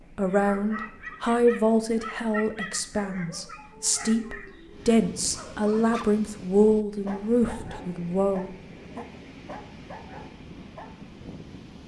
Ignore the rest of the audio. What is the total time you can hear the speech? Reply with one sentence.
You can hear the speech for 9 seconds altogether.